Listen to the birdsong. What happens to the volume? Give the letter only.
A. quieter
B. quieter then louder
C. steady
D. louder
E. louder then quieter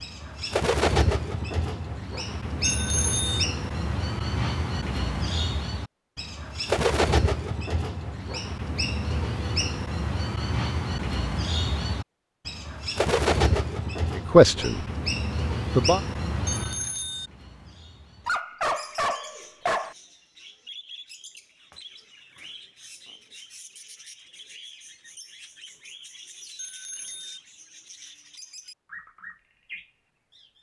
A.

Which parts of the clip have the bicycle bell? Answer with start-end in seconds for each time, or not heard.
2.6-3.5, 16.4-17.3, 26.6-27.4.